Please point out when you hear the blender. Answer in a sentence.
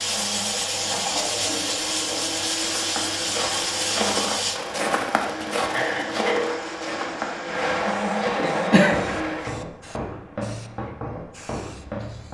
The blender can be heard from 0.0 to 9.7 s.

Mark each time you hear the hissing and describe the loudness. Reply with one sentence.
The hissing can be heard from 0.0 to 12.2 s, getting quieter.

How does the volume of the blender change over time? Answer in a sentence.
The loudness of the blender goes up.